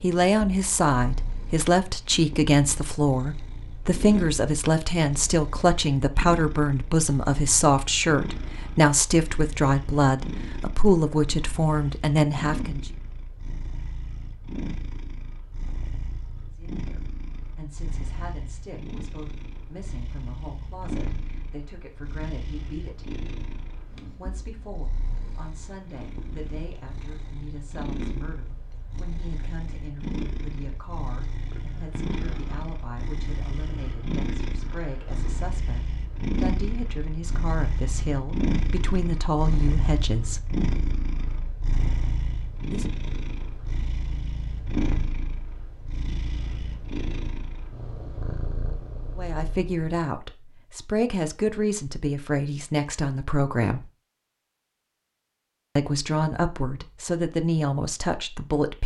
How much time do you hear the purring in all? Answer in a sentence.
The purring can be heard for 50 seconds in total.